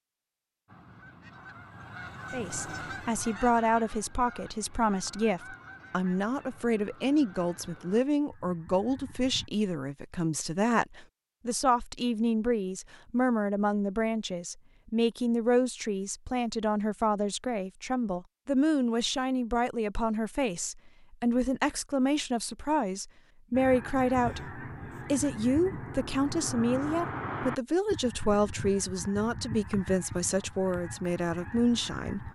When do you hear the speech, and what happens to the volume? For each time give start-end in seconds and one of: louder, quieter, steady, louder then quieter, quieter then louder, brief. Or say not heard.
2.3-32.2 steady.